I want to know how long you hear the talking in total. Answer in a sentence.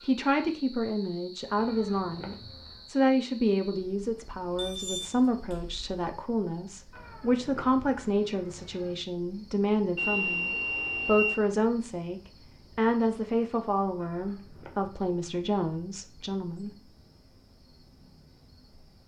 The talking can be heard for 17 seconds in total.